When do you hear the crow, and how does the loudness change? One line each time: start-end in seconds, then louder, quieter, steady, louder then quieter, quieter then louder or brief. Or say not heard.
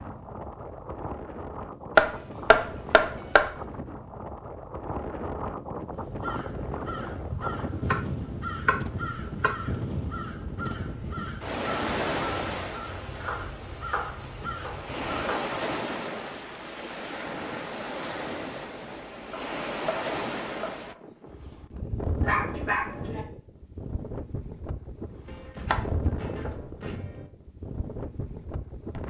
5.9-15.3 steady.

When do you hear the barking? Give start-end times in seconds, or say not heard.
22.2-23.2.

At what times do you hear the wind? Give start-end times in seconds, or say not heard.
0.0-29.0.